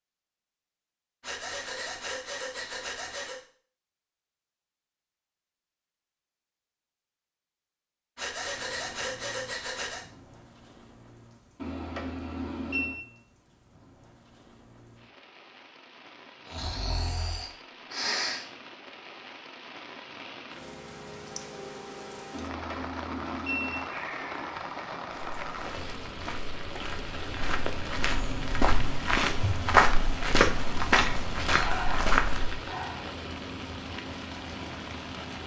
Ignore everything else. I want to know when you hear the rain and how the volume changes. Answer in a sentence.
You can hear the rain from 8.5 to 35.4 s, getting louder.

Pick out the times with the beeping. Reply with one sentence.
The beeping can be heard from 11.6 to 13.0 s and from 22.3 to 23.9 s.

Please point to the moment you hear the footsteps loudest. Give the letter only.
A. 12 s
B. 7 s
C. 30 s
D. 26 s
C.